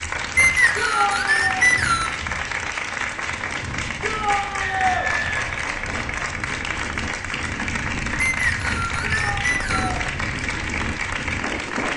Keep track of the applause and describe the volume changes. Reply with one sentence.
The loudness of the applause stays about the same.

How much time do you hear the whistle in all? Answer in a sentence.
The whistle can be heard for 5 seconds in total.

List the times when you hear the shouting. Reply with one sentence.
The shouting can be heard from 0.8 to 1.6 s, from 4.0 to 5.1 s and from 9.0 to 10.1 s.